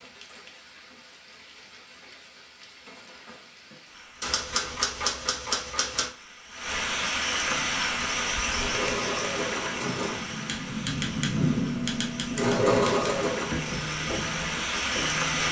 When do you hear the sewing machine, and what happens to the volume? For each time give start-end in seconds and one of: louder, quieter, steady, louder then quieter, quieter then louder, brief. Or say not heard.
7.5-15.4 louder then quieter.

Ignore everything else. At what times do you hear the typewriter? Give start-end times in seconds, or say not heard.
4.2-6.1, 10.4-13.1.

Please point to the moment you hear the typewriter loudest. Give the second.
5 s.